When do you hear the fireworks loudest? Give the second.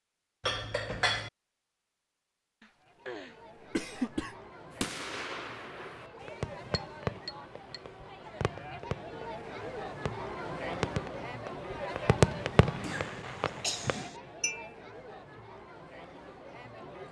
12 s.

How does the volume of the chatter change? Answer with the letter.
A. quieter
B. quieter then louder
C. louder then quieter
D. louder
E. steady
C.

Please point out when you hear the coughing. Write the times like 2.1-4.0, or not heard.
2.6-4.3, 12.8-14.2.